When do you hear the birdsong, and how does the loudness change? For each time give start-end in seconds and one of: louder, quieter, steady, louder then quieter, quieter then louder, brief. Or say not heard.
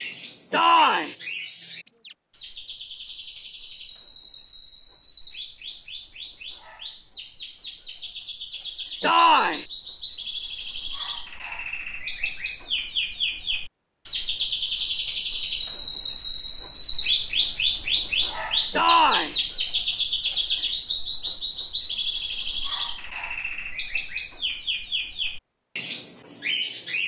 0.0-27.0 louder then quieter.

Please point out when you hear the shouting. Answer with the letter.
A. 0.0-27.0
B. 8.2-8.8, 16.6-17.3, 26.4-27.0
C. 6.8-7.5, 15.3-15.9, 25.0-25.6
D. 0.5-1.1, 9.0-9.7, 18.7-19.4
D.